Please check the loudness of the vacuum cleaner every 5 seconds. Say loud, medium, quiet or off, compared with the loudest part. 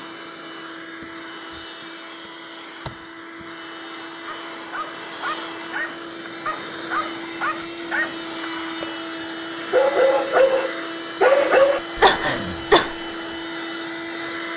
medium, loud, loud.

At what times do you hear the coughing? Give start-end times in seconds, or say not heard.
11.9-12.9.